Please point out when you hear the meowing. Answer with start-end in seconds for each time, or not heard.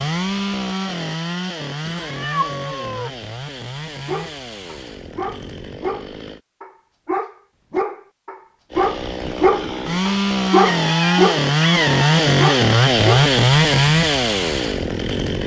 1.9-3.1, 10.6-12.2.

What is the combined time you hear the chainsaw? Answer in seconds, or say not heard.
13 s.